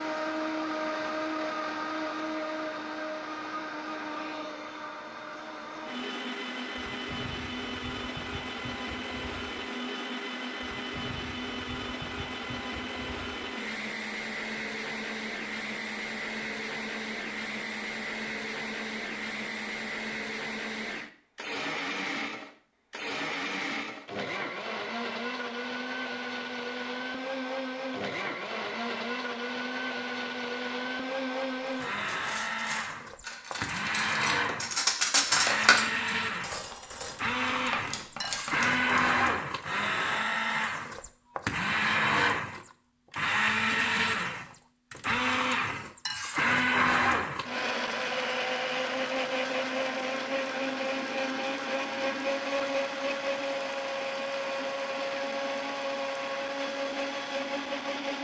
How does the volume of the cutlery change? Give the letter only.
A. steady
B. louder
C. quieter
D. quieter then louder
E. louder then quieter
E.